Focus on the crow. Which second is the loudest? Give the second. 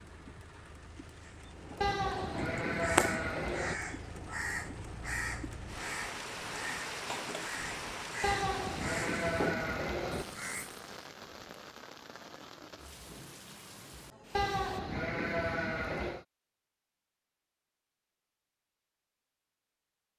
3 s.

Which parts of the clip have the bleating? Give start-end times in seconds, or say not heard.
1.8-3.8, 8.2-10.2, 14.3-16.2.